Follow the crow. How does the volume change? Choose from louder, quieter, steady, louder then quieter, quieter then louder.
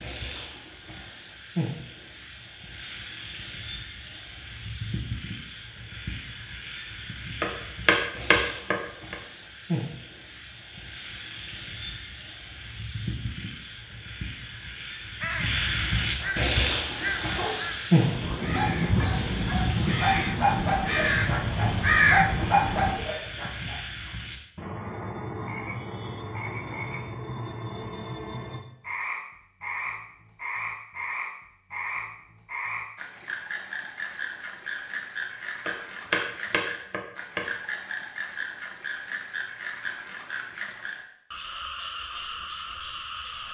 louder.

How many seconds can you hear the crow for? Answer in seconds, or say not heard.
8 s.